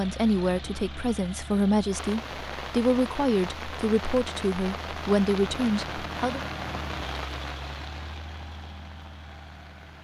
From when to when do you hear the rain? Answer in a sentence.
The rain can be heard from 1.9 to 9.9 s.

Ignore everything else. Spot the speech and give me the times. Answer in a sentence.
The speech can be heard from 0.0 to 6.4 s.